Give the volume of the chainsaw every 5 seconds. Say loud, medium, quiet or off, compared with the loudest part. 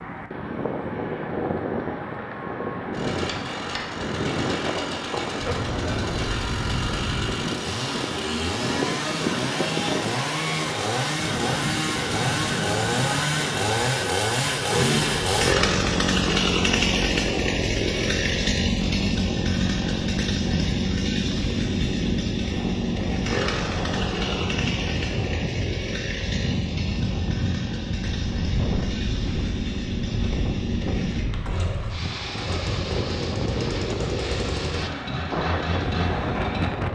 medium, medium, loud, loud, loud, medium, medium, medium.